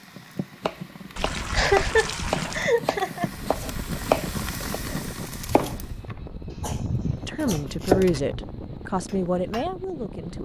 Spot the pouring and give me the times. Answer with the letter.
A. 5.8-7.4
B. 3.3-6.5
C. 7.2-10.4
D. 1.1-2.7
D.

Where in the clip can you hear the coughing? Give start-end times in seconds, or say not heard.
1.5-3.3, 6.5-7.6.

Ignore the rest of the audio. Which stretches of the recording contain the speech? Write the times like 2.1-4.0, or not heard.
7.2-10.4.